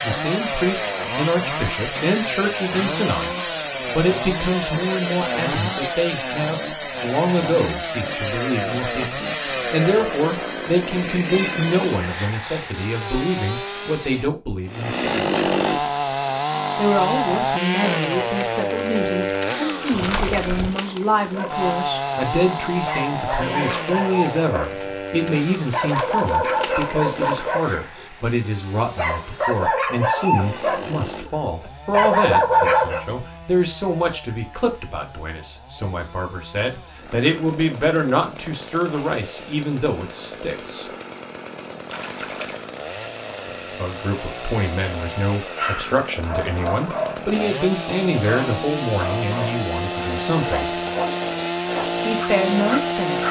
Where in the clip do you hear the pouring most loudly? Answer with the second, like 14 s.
20 s.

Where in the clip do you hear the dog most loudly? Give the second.
33 s.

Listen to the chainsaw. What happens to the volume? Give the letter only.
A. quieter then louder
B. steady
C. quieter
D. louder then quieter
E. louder
A.